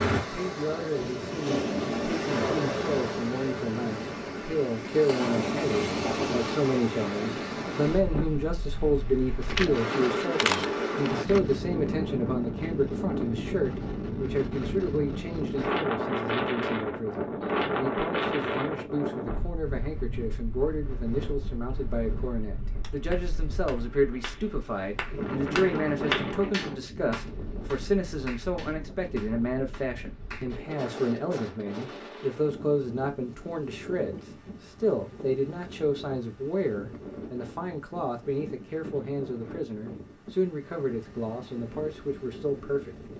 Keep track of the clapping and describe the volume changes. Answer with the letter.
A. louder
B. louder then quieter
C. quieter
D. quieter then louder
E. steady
B.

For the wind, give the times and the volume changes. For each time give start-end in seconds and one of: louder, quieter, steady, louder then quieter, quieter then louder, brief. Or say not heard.
0.0-43.1 quieter.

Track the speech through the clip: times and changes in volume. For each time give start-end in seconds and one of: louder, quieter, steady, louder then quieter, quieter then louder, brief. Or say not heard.
0.2-43.1 steady.